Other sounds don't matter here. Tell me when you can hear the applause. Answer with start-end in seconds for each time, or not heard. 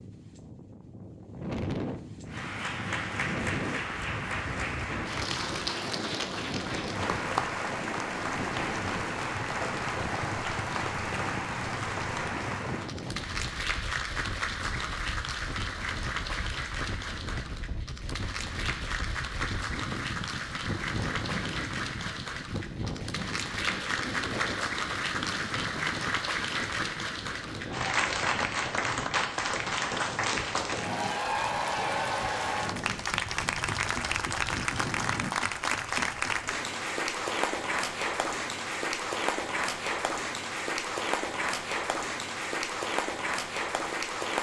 2.2-44.3.